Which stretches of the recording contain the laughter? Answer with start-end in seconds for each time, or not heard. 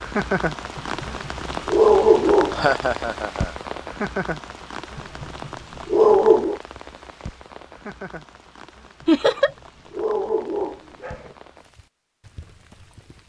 2.5-3.5, 9.1-9.5.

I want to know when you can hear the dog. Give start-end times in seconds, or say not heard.
0.8-2.6, 5.0-6.6, 9.0-11.3.